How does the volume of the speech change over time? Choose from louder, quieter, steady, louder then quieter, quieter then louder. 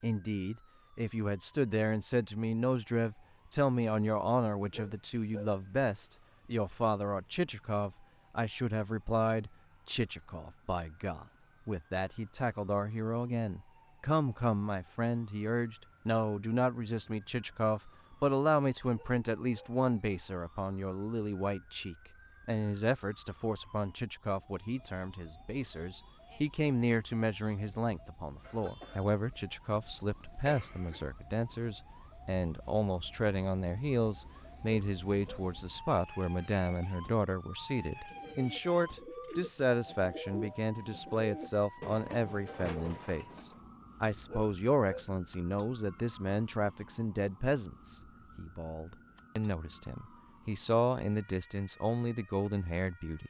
steady.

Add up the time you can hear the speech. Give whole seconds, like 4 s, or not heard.
53 s.